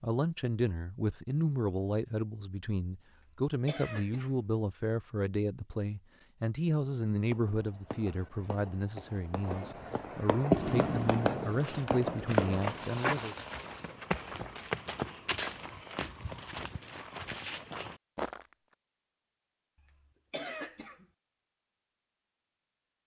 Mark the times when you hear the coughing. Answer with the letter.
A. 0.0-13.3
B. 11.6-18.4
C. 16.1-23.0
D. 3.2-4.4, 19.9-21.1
D.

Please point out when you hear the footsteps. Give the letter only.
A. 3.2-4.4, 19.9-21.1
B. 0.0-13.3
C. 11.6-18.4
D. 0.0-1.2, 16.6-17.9
C.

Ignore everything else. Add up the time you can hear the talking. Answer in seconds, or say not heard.
13 s.